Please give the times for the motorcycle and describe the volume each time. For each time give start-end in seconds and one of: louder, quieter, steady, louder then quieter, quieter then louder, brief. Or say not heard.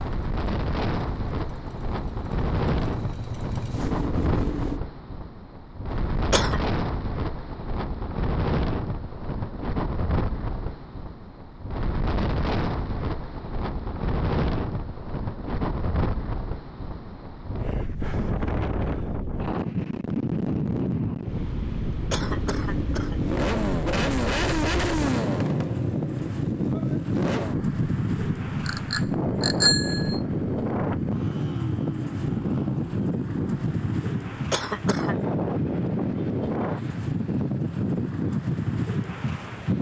0.0-4.8 louder
22.1-39.7 quieter.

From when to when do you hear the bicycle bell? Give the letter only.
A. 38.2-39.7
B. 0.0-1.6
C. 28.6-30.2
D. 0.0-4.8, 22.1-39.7
C.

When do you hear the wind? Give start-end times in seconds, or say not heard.
0.0-39.7.